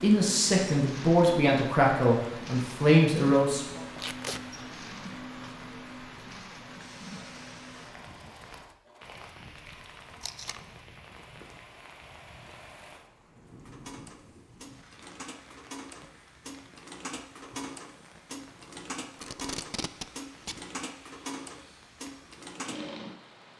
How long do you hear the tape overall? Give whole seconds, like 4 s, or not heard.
2 s.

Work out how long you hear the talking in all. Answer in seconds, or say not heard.
4 s.